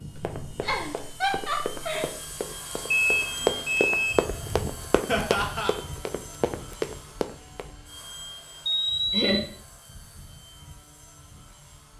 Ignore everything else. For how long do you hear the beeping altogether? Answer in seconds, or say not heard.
2 s.